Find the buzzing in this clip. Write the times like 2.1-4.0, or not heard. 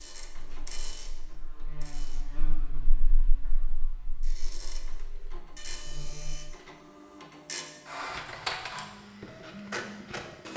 0.0-6.4.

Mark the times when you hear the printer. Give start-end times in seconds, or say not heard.
0.0-2.2, 4.2-10.5.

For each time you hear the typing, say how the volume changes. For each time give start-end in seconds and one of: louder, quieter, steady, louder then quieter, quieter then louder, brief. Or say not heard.
not heard.